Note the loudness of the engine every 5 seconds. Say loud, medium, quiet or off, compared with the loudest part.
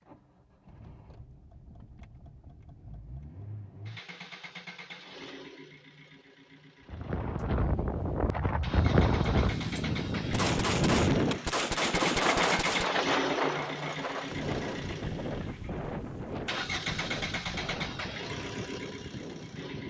quiet, medium, loud, loud.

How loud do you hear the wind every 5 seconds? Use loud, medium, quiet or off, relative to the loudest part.
off, loud, loud, medium.